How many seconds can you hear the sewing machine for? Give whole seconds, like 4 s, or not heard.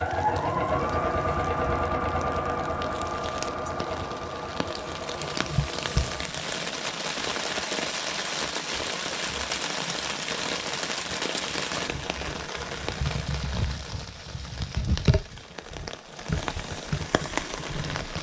6 s.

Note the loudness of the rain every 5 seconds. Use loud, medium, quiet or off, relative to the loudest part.
medium, loud, loud, loud.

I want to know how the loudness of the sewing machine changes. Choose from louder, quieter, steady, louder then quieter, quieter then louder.
quieter.